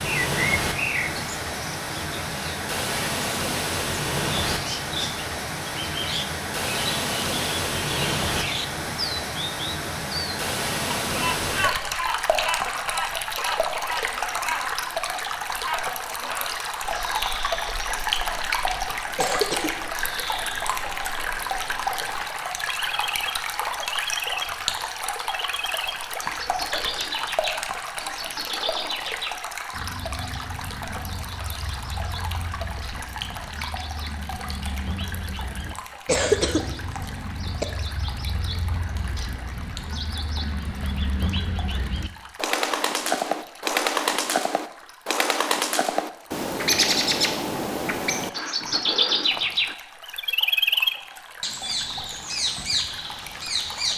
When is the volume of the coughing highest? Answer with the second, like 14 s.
36 s.